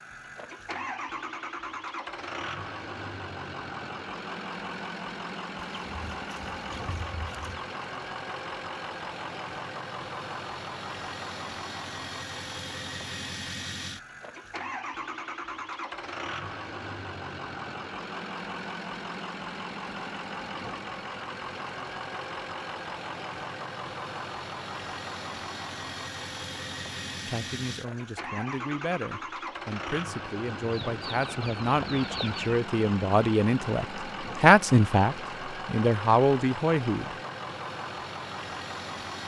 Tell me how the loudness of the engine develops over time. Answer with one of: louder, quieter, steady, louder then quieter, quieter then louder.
steady.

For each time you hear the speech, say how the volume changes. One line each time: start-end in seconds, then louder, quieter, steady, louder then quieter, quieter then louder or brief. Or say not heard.
27.2-37.1 louder.